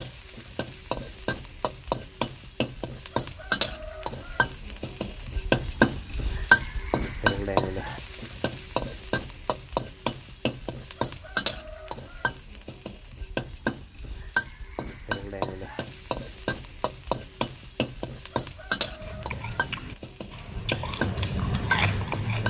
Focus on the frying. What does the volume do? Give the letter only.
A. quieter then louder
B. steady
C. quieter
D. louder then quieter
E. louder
D.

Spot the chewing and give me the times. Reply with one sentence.
You can hear the chewing from 19.0 to 22.4 s.